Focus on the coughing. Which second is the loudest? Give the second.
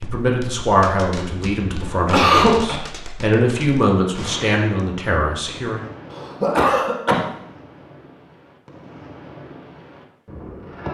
2 s.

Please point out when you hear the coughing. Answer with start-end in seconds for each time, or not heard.
1.4-2.8, 6.1-7.2.